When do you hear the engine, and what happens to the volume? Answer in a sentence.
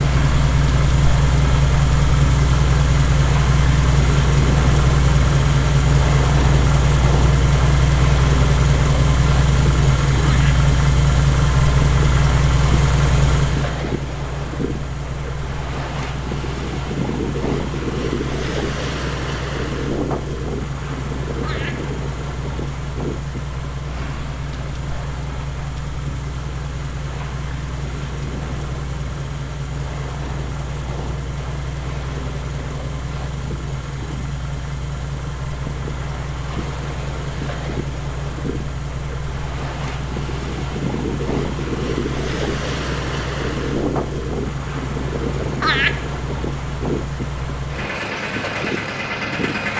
The engine can be heard from 0.0 to 49.7 s, getting quieter.